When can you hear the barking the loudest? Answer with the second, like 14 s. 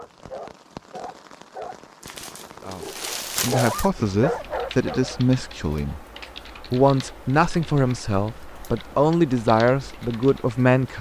4 s.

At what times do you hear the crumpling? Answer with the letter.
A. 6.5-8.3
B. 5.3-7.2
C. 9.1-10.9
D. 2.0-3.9
D.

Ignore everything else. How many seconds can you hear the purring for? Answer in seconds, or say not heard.
not heard.